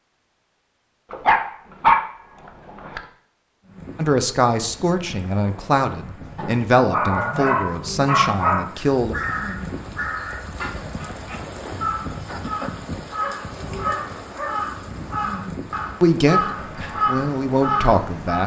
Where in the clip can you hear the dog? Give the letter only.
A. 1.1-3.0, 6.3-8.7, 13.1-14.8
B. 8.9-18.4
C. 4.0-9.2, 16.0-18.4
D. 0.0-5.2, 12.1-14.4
A.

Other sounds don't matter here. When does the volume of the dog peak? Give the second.
2 s.